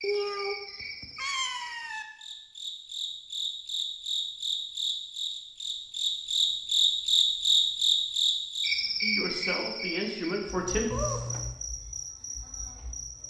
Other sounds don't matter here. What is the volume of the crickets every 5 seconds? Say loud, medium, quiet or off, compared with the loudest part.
medium, loud, quiet.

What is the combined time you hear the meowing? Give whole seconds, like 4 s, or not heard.
3 s.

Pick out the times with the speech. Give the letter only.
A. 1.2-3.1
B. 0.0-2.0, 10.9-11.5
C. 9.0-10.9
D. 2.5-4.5
C.